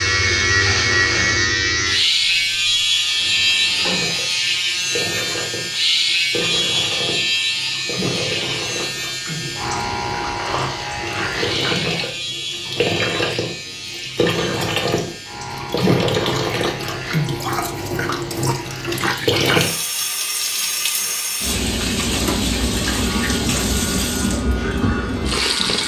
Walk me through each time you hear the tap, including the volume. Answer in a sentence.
You can hear the tap from 0.0 to 25.8 s, getting louder.